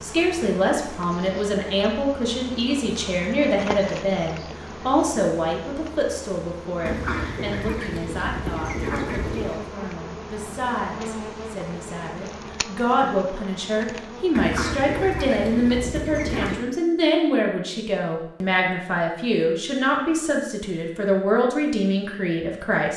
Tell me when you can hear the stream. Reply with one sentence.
You can't hear the stream here.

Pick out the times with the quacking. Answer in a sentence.
You can hear the quacking from 6.8 to 9.6 s and from 14.3 to 16.6 s.